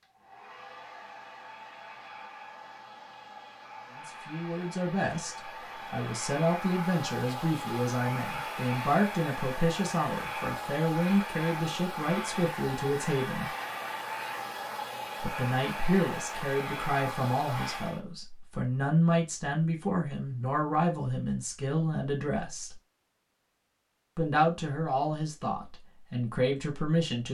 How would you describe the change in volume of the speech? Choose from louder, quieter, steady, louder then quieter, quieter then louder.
steady.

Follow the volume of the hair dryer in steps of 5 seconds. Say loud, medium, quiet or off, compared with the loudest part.
medium, loud, loud, loud, off, off.